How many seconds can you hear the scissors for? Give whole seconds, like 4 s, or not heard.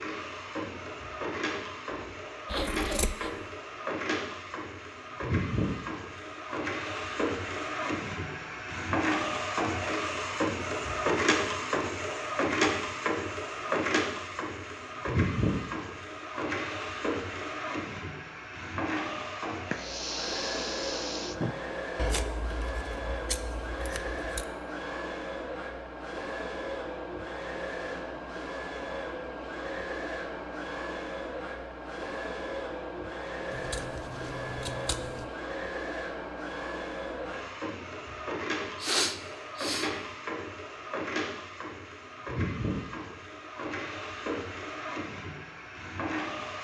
5 s.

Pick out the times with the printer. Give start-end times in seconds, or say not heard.
0.0-46.5.